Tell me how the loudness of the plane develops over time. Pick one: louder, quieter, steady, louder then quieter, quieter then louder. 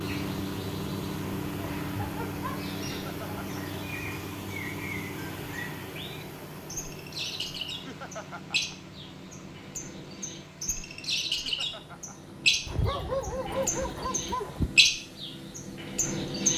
quieter.